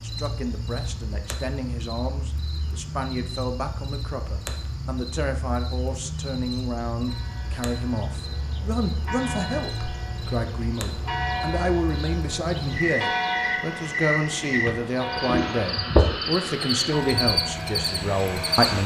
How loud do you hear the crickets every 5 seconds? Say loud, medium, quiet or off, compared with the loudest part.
medium, medium, medium, loud.